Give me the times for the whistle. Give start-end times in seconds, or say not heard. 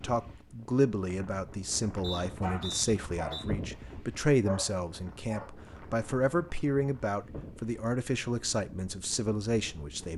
2.0-3.5.